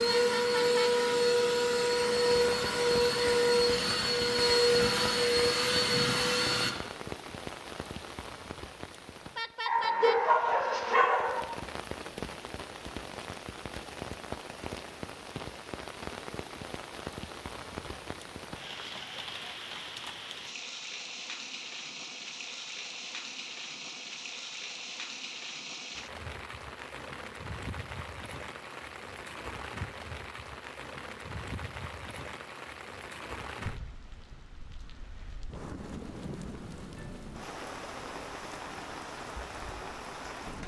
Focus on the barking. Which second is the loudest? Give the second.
10 s.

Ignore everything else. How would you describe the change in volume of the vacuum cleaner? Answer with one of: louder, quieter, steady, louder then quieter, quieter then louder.
steady.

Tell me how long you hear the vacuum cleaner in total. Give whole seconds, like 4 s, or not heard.
7 s.